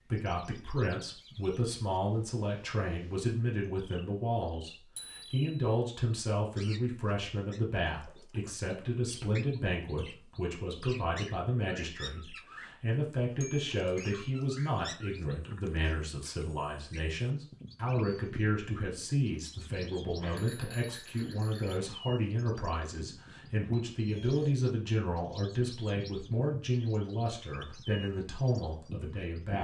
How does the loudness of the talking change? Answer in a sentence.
The loudness of the talking stays about the same.